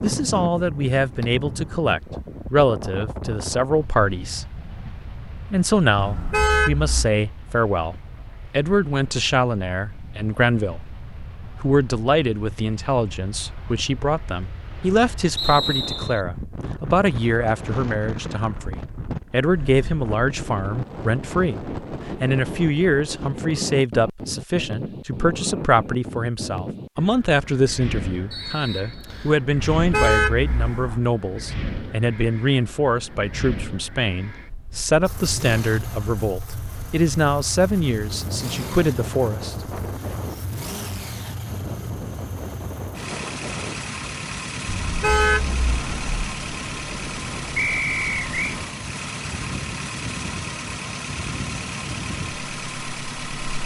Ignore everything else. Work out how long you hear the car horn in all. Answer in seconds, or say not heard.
4 s.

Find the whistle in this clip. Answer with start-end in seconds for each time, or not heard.
15.3-16.2, 28.3-29.4, 47.5-48.5.